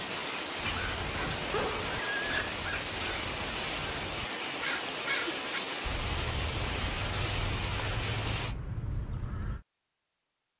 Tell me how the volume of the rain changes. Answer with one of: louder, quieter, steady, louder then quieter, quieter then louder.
steady.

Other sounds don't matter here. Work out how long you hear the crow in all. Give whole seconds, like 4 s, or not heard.
9 s.